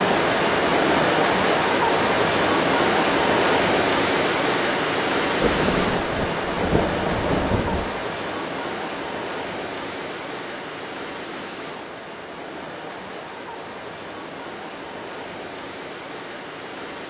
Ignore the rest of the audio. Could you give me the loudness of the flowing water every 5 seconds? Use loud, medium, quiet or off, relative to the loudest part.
loud, medium, quiet, quiet.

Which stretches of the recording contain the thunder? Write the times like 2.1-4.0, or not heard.
5.4-7.9.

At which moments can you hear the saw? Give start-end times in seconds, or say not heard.
not heard.